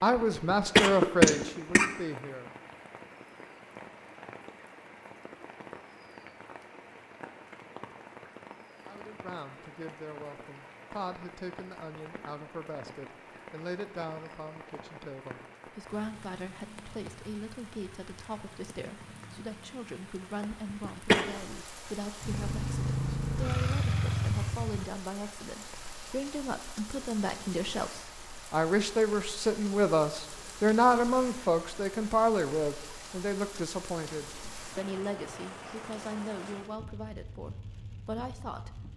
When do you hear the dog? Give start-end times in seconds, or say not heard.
not heard.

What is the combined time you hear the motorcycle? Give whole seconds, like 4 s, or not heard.
3 s.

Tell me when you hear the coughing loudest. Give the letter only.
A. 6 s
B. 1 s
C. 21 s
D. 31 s
B.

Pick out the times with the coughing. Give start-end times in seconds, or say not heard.
0.1-1.9, 20.5-21.2.